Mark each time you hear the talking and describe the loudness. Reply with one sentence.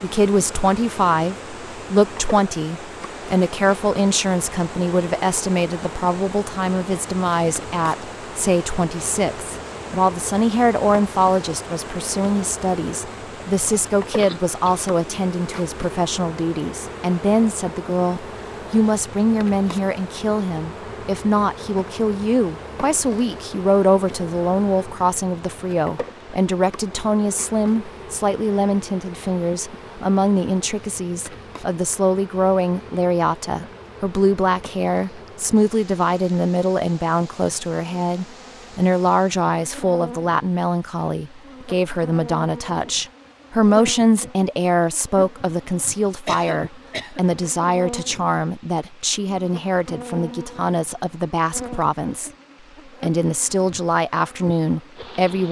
The talking can be heard from 0.0 to 52.3 s, at a steady volume; and briefly from 53.0 to 55.4 s.